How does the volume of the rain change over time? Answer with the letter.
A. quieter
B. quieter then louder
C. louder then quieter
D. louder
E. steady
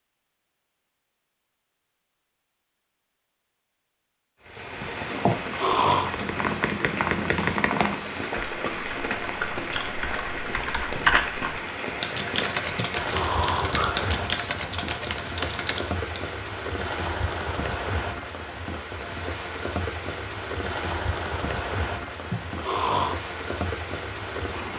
E.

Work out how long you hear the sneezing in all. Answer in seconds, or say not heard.
3 s.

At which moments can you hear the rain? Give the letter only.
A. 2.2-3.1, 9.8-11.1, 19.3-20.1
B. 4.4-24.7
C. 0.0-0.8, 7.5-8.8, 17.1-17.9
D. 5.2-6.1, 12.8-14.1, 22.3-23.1
B.